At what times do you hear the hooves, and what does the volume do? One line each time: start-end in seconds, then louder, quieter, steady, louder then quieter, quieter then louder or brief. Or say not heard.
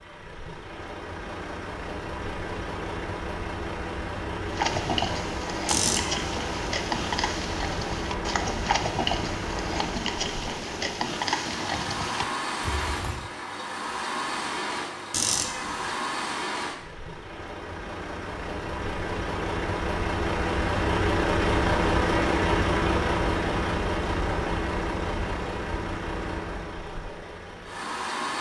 4.4-13.3 steady.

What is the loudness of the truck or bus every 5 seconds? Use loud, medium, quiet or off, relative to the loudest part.
medium, medium, medium, medium, loud, medium.